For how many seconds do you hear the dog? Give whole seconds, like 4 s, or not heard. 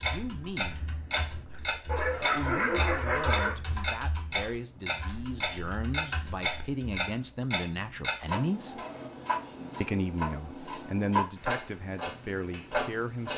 2 s.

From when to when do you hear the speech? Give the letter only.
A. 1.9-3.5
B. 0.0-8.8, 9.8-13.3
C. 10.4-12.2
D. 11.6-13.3
B.